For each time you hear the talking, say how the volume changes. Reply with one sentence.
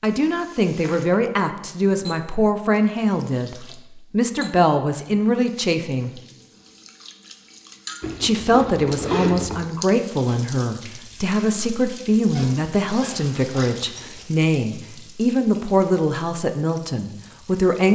You can hear the talking from 0.0 to 6.2 s, at a steady volume; and from 8.2 to 17.9 s, at a steady volume.